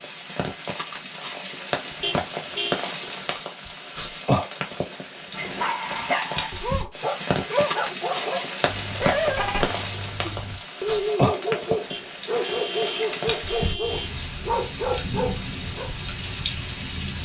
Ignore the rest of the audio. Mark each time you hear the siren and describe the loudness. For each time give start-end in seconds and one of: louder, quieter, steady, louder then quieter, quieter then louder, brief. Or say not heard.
not heard.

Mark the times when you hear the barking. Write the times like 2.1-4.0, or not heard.
5.3-15.9.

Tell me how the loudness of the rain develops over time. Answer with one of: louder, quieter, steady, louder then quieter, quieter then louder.
steady.